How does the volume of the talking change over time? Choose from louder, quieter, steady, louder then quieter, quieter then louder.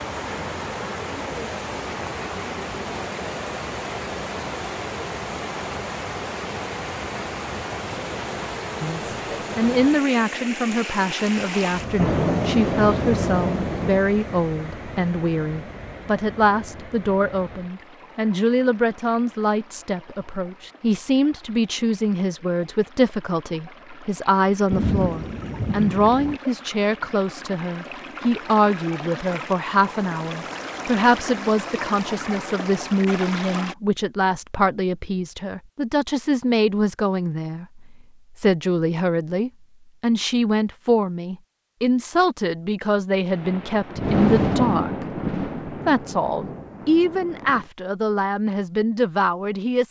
steady.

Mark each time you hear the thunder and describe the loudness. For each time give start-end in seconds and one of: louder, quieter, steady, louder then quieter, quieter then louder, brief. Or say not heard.
11.9-14.0 brief
24.7-26.4 brief
43.3-47.6 quieter.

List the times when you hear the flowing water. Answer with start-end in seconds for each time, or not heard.
0.0-33.8.